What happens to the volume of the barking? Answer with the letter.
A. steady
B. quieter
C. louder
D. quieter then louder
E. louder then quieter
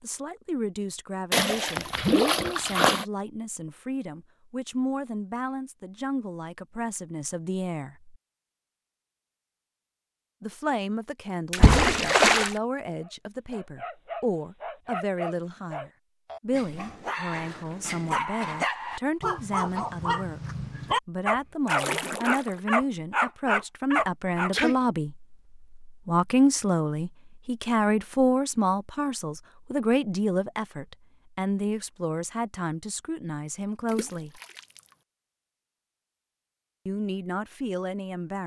C.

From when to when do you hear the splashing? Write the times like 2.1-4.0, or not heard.
1.3-3.0, 11.5-12.6, 21.6-22.6, 33.9-34.8.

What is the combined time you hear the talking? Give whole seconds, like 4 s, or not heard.
34 s.